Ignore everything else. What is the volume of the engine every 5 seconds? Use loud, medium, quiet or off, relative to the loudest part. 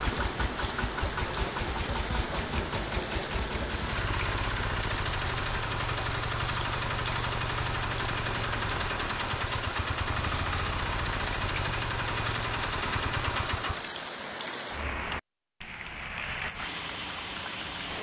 loud, loud, loud, off.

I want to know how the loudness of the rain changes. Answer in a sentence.
The volume of the rain stays about the same.